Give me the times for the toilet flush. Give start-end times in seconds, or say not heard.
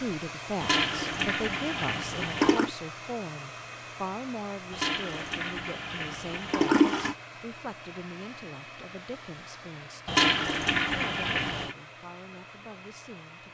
0.6-2.7, 4.7-7.2, 10.1-11.8.